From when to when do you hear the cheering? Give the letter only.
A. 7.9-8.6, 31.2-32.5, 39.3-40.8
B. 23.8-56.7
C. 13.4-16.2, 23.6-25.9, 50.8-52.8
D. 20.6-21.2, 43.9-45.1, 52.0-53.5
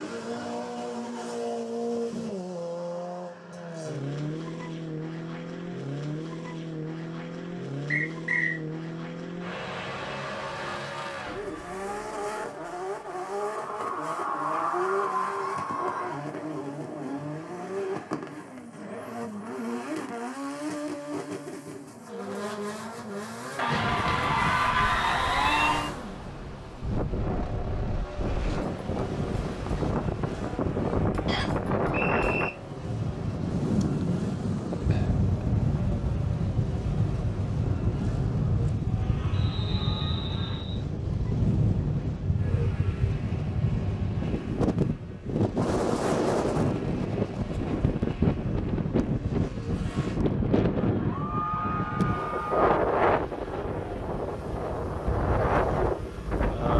C.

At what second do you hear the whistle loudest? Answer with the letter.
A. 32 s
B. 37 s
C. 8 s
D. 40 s
C.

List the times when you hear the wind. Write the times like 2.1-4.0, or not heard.
23.8-56.7.